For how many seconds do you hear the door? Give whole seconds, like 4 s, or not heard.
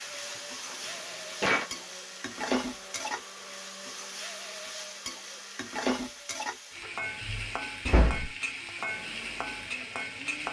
3 s.